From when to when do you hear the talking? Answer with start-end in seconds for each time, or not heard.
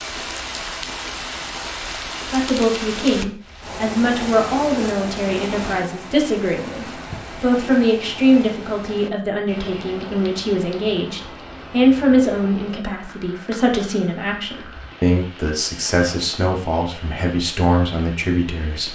2.3-18.9.